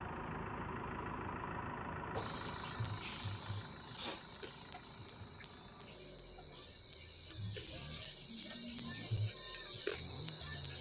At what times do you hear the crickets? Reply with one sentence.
You can hear the crickets from 2.1 to 10.7 s.